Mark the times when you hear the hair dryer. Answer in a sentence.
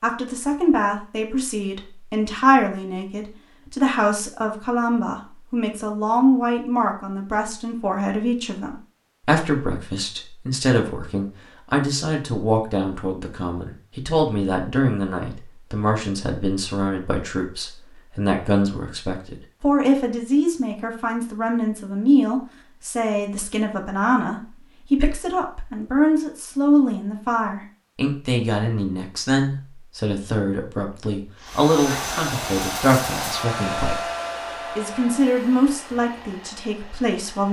The hair dryer can be heard from 31.4 to 37.4 s.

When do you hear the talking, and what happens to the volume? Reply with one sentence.
The talking can be heard from 0.0 to 34.0 s, at a steady volume; and briefly from 34.8 to 37.4 s.